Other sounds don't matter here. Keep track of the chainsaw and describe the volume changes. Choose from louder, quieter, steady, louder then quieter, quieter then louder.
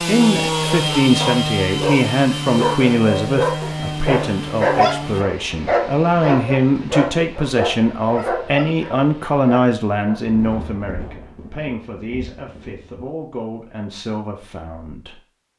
quieter.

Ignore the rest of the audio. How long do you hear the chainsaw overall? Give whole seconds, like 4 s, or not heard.
5 s.